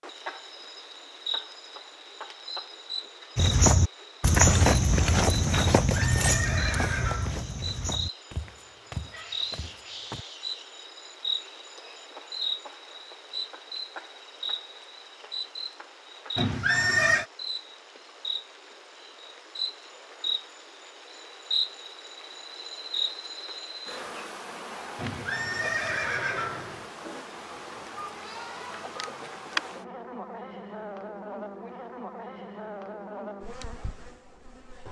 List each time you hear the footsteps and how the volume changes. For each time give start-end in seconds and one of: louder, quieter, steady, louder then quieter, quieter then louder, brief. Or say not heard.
3.4-10.2 quieter.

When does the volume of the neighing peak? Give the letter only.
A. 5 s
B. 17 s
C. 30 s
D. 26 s
B.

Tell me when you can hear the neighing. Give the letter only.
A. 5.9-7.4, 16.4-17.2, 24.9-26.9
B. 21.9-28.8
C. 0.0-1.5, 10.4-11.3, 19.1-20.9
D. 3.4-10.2
A.